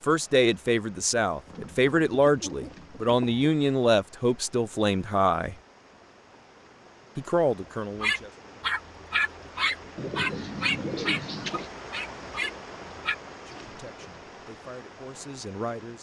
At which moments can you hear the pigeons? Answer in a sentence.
The pigeons can be heard from 1.4 to 3.5 s and from 9.9 to 11.7 s.